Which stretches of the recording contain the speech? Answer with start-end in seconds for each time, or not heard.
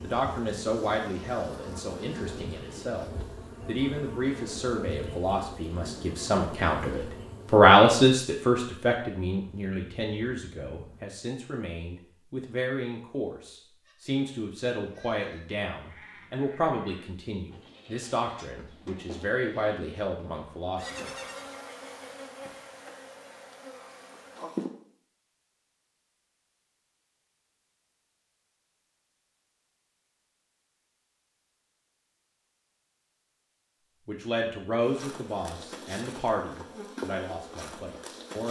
0.0-21.1, 34.0-38.4.